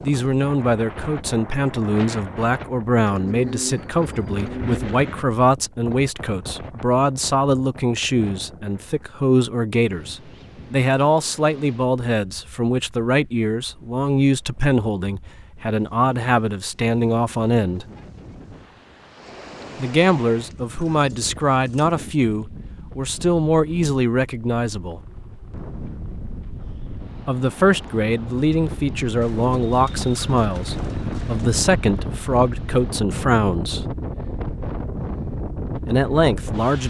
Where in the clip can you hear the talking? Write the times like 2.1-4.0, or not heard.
0.0-17.9, 19.8-25.0, 27.2-33.9, 35.9-36.8.